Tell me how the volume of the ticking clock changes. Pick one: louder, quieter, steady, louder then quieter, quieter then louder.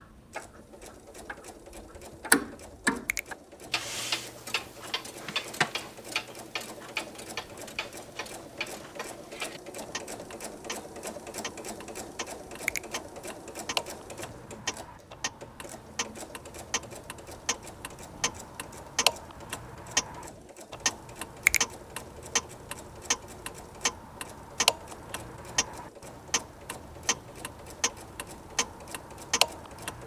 quieter then louder.